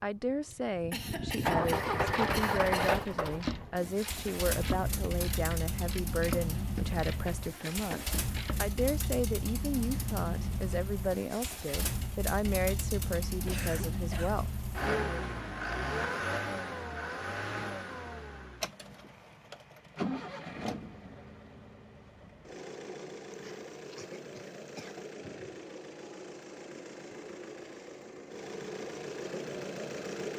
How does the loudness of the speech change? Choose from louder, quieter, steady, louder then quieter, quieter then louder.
steady.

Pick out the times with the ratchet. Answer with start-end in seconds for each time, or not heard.
1.8-8.8.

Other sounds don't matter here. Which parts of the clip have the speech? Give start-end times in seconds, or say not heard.
0.0-15.2.